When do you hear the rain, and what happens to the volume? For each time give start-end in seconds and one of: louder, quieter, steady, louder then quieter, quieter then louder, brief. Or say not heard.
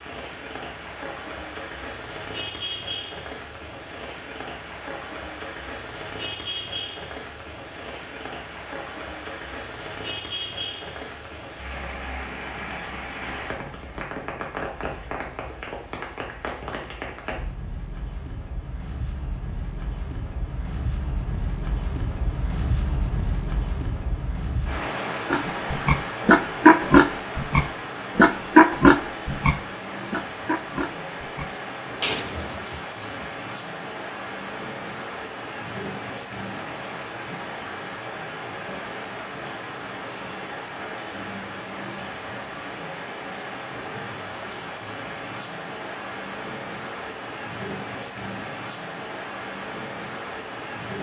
0.0-50.9 steady.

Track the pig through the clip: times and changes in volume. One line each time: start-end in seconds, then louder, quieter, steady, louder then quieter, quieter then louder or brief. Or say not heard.
25.3-33.3 quieter.